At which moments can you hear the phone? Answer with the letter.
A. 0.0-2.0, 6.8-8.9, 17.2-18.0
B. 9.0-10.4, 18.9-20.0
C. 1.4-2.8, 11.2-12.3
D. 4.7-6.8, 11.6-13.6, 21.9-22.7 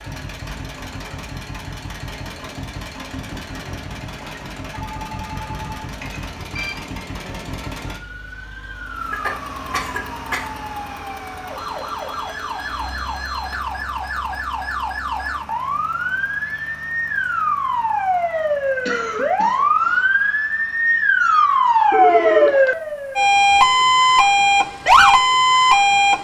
D.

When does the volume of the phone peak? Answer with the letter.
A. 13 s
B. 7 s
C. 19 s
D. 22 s
D.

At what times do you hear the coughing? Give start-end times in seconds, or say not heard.
9.0-10.4, 18.9-20.0.